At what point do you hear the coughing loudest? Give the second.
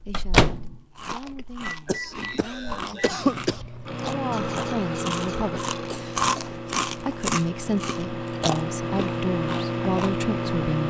3 s.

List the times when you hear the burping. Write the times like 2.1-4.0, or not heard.
3.9-6.0.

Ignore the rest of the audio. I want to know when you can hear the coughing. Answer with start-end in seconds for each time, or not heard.
1.9-3.6, 5.7-6.6.